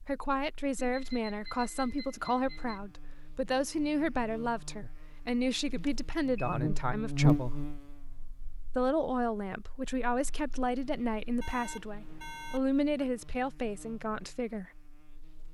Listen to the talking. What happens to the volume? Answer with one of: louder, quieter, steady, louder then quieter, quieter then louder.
steady.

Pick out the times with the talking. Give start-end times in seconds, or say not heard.
0.1-7.6, 8.8-14.7.